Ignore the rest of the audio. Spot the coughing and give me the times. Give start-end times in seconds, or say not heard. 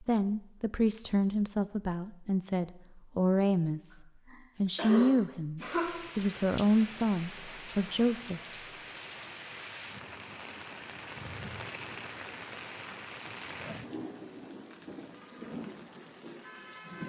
4.3-5.9.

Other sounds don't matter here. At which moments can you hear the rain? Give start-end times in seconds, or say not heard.
5.5-17.0.